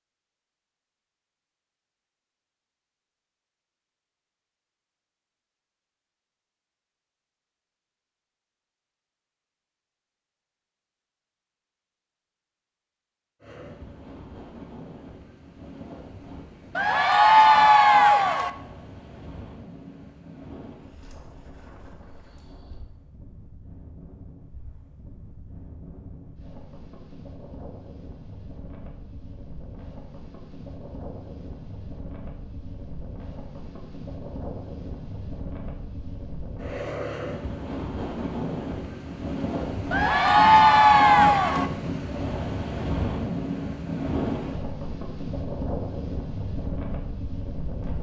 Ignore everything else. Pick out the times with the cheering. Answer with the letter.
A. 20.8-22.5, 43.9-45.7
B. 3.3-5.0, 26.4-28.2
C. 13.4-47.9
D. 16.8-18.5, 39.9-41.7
D.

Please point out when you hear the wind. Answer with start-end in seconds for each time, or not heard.
13.4-47.9.